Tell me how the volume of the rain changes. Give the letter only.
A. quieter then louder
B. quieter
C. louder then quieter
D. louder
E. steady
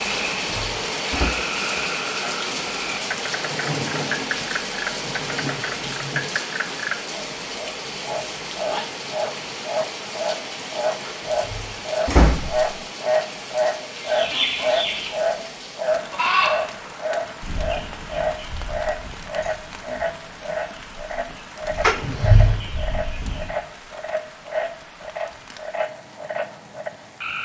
B.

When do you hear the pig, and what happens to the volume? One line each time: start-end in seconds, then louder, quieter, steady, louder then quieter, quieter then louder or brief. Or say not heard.
not heard.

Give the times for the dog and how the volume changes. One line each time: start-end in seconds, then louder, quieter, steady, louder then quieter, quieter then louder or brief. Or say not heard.
not heard.